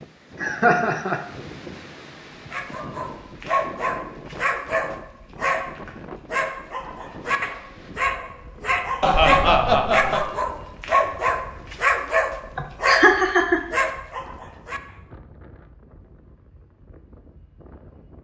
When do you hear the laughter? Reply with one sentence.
You can hear the laughter from 0.4 to 1.2 s, from 9.0 to 10.2 s and from 12.6 to 13.9 s.